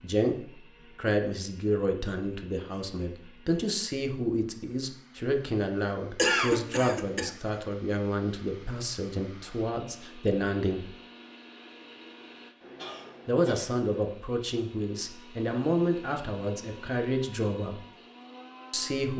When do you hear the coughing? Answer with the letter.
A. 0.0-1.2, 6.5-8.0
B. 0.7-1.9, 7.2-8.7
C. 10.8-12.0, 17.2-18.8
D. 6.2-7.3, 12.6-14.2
D.